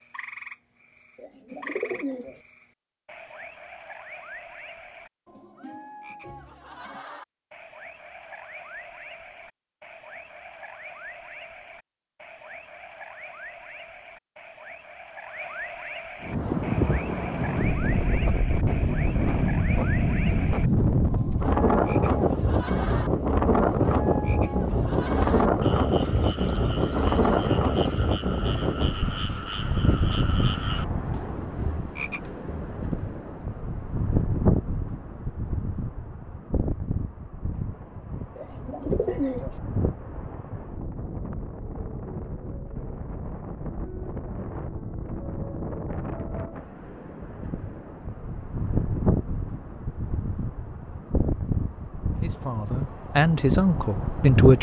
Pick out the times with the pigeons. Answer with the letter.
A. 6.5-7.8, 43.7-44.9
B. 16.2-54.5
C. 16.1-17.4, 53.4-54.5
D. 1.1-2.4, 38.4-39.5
D.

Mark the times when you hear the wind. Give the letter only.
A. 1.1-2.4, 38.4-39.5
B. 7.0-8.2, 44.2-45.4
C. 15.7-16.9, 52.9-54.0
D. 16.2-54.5
D.